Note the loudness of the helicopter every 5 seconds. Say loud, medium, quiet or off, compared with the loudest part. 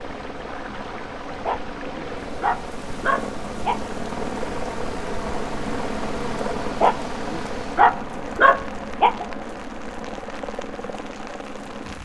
loud, loud, medium.